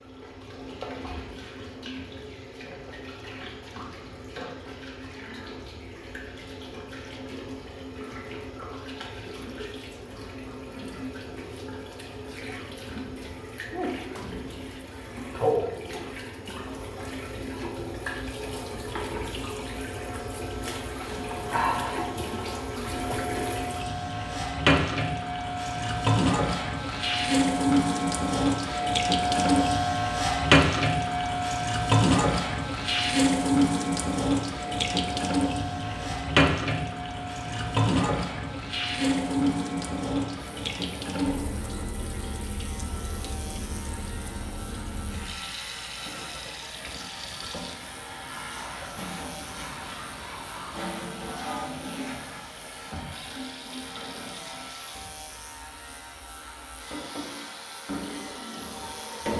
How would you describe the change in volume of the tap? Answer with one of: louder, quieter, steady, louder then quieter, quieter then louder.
louder then quieter.